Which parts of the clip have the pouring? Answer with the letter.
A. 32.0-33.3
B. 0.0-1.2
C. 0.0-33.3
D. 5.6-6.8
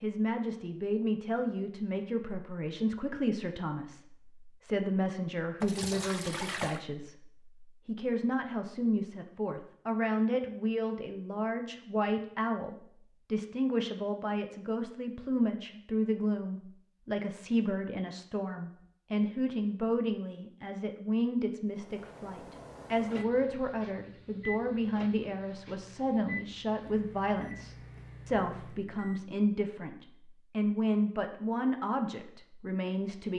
D.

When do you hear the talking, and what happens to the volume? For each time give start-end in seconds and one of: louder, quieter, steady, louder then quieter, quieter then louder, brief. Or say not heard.
0.0-33.3 steady.